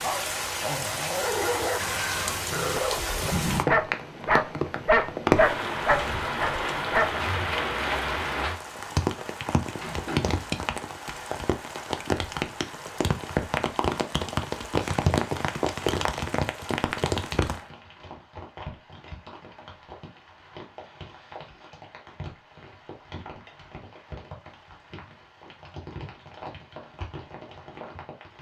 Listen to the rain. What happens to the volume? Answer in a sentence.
The volume of the rain goes down.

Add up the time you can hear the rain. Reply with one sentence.
The rain can be heard for 28 seconds in total.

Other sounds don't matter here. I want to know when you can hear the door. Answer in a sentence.
The door can be heard from 9.8 to 10.4 s.